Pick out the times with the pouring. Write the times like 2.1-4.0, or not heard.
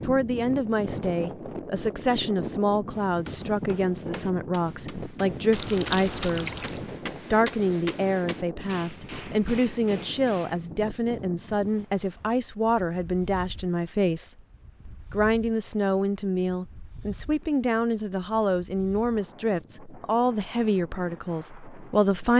5.5-6.8.